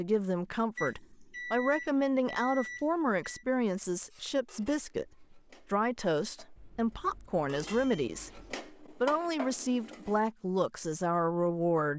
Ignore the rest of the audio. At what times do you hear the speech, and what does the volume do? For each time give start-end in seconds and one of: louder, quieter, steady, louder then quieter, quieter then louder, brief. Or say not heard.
0.0-11.9 steady.